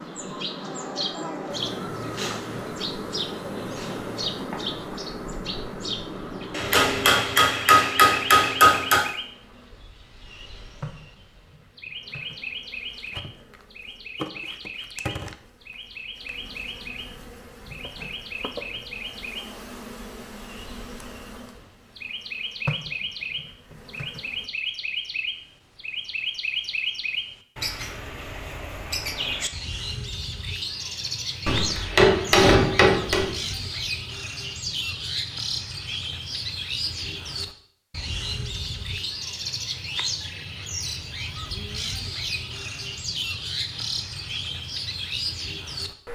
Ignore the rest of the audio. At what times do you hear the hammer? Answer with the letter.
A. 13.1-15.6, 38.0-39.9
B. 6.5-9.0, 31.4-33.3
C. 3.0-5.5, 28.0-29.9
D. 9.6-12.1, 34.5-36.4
B.